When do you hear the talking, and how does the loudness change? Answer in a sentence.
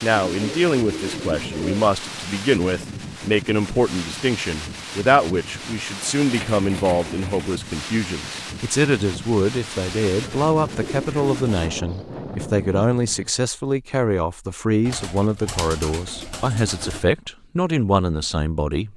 The talking can be heard from 0.0 to 18.9 s, at a steady volume.